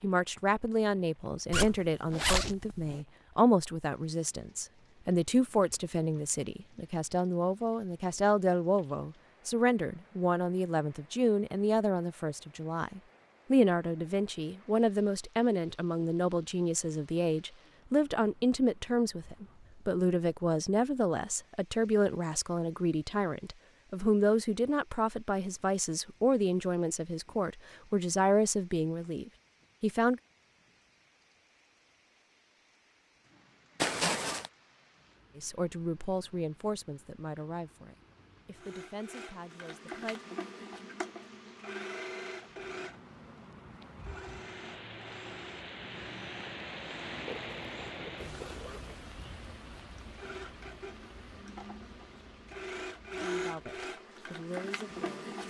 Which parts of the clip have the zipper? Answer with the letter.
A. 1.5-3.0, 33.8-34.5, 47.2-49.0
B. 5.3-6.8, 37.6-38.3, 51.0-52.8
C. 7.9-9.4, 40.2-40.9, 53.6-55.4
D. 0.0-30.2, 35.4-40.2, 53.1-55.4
A.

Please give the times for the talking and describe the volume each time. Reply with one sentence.
The talking can be heard from 0.0 to 30.2 s, at a steady volume; from 35.4 to 40.2 s, getting quieter; and briefly from 53.1 to 55.4 s.